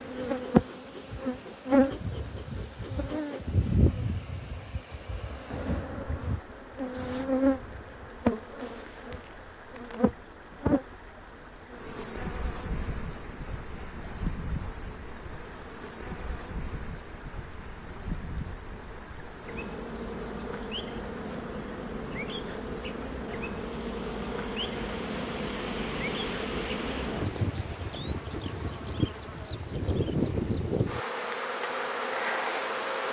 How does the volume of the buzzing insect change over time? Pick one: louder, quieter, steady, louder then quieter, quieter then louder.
quieter then louder.